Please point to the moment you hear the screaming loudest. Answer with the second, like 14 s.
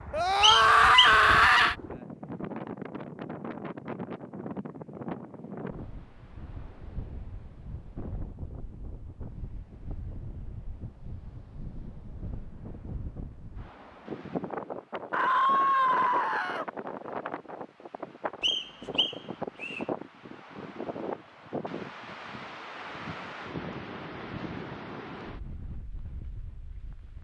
1 s.